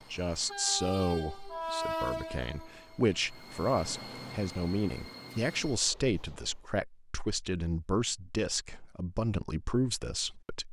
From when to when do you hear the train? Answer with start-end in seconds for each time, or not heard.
0.0-6.8.